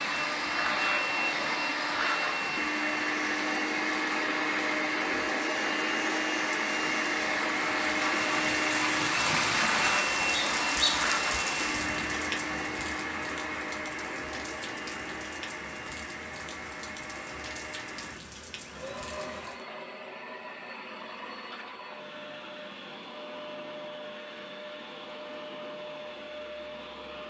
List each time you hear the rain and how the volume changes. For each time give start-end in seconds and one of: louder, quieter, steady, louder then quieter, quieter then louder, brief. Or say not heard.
0.0-19.6 louder then quieter.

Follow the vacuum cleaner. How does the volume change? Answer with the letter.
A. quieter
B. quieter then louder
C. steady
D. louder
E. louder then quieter
A.